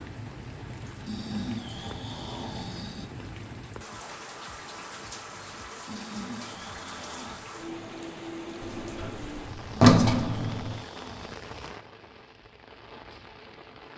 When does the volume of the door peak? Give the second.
10 s.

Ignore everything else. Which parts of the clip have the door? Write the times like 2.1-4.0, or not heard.
8.6-10.8.